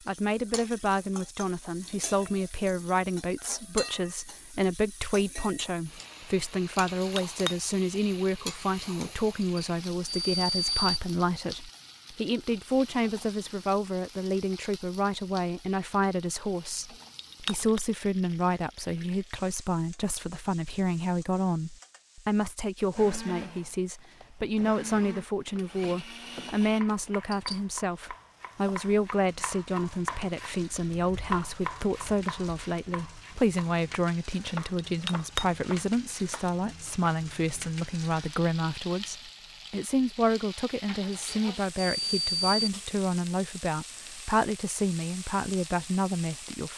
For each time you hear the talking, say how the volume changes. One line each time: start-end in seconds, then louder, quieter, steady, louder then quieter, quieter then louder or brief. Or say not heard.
0.1-46.7 steady.